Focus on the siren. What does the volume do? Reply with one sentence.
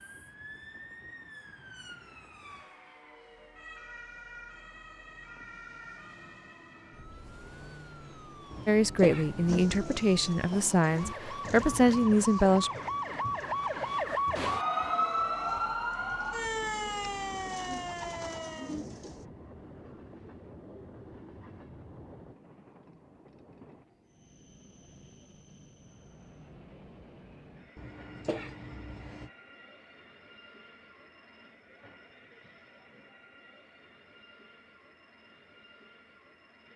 The loudness of the siren goes up.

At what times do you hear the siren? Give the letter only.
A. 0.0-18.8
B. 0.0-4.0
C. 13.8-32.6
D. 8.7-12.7
A.